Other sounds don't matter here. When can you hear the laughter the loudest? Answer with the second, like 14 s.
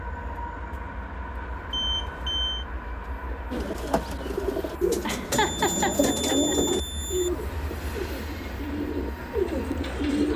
6 s.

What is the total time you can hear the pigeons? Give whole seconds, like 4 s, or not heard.
7 s.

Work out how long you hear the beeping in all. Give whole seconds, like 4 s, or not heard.
3 s.